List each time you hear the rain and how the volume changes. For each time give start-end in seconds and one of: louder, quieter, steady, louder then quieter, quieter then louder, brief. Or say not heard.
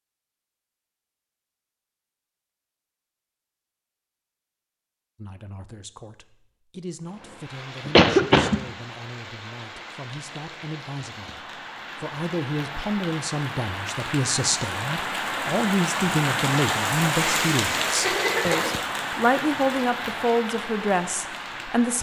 7.0-21.9 louder then quieter.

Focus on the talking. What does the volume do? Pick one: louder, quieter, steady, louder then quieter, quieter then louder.
louder.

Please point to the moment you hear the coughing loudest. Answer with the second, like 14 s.
8 s.